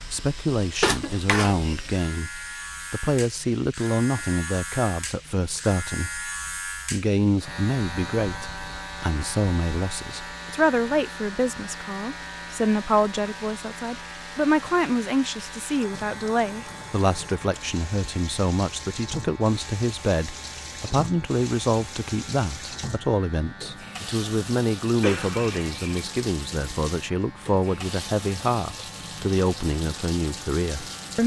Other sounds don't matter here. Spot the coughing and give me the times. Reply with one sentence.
The coughing can be heard from 0.8 to 1.8 s and from 25.0 to 26.1 s.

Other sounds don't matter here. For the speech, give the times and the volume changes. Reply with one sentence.
You can hear the speech from 0.1 to 31.2 s, at a steady volume.